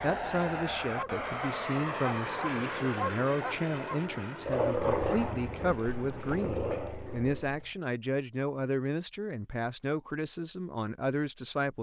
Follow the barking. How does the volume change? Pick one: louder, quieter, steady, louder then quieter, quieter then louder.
louder then quieter.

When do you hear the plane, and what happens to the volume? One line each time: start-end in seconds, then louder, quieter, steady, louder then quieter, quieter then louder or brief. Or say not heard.
0.0-6.4 quieter.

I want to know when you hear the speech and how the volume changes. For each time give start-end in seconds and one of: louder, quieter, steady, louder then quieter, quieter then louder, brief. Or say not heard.
0.0-11.7 steady.